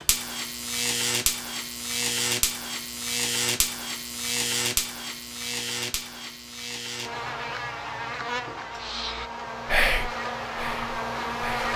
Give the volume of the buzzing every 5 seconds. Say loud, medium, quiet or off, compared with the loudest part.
loud, medium, loud.